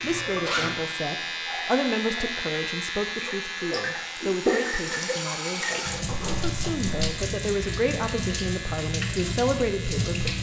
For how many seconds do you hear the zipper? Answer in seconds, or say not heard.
2 s.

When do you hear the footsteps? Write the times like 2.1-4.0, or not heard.
not heard.